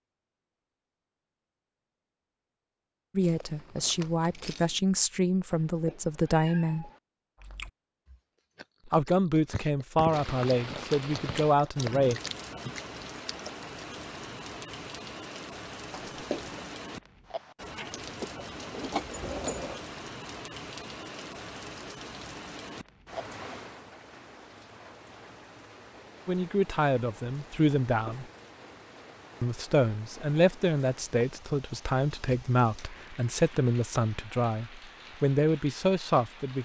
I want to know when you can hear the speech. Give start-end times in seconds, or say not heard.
3.1-6.9, 8.8-12.2, 26.2-28.2, 29.4-36.5.